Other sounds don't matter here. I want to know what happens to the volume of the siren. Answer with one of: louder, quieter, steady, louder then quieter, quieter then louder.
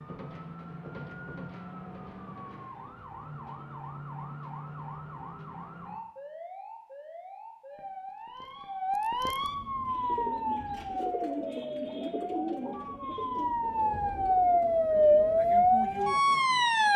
louder.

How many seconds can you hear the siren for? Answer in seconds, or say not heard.
17 s.